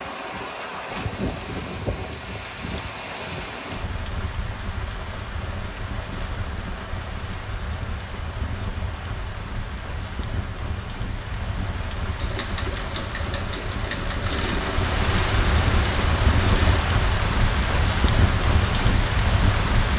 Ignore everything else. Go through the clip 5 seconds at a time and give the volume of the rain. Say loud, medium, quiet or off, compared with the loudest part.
medium, medium, medium, loud.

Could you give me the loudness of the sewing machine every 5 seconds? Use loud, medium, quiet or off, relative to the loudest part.
off, off, loud, loud.